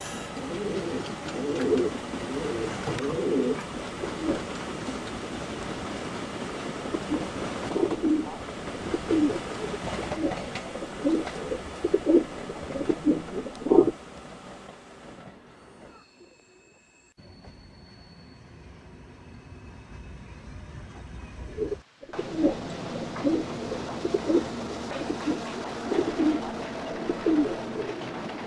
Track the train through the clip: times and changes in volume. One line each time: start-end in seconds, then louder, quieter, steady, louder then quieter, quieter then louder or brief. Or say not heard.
0.0-28.4 quieter then louder.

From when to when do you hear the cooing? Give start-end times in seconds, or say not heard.
0.0-4.4, 6.8-13.9, 21.6-28.4.